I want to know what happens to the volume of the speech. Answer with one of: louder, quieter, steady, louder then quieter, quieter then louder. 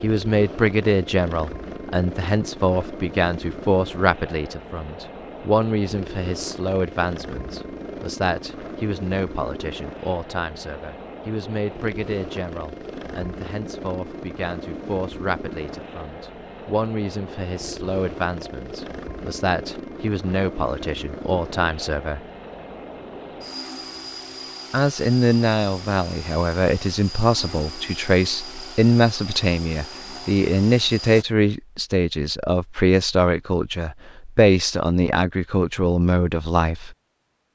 quieter then louder.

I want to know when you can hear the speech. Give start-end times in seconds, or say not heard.
0.0-22.2, 24.7-37.0.